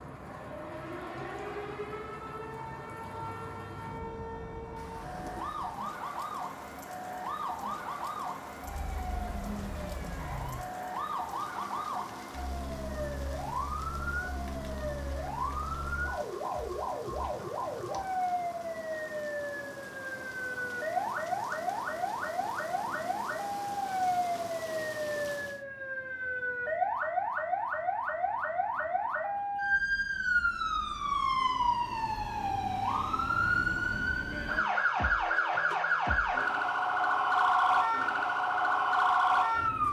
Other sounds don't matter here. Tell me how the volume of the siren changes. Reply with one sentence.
The loudness of the siren goes up.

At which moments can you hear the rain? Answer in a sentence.
The rain can be heard from 0.0 to 25.6 s.